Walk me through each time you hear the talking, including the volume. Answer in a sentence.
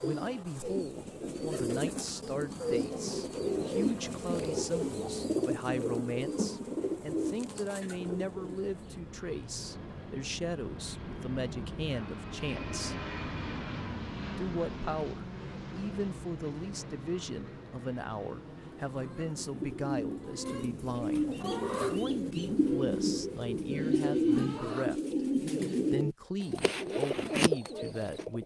You can hear the talking from 0.0 to 12.9 s, at a steady volume; and from 14.3 to 28.4 s, at a steady volume.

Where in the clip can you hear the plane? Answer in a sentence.
The plane can be heard from 7.9 to 24.6 s.